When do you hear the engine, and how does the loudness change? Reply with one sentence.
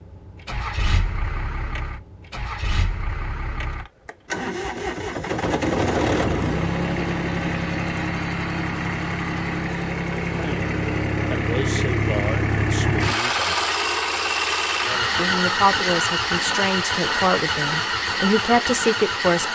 You can hear the engine from 0.0 to 19.5 s, getting louder.